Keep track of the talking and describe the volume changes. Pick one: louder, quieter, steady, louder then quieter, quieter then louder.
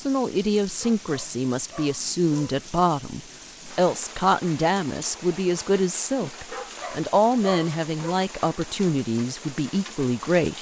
steady.